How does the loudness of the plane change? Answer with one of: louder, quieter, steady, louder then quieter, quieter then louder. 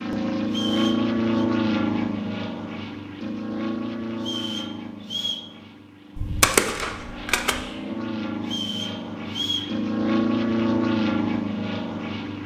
quieter then louder.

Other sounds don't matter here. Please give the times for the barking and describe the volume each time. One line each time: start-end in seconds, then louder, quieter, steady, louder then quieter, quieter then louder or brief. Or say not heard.
not heard.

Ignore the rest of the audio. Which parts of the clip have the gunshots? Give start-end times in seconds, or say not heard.
6.2-7.6.